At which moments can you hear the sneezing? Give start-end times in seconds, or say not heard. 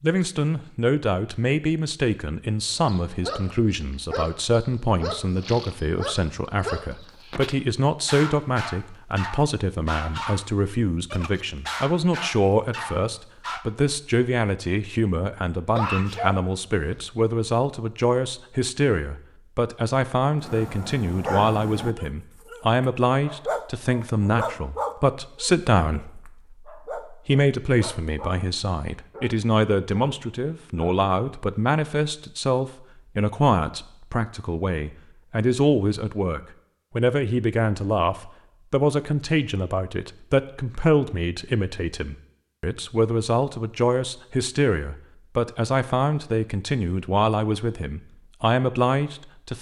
15.8-17.1.